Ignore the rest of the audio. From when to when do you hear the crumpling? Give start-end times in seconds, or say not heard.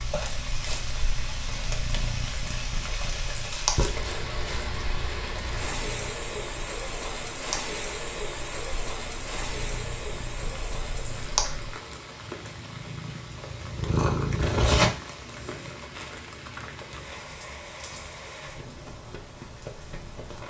15.9-17.0.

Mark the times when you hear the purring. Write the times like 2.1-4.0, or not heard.
0.0-15.7.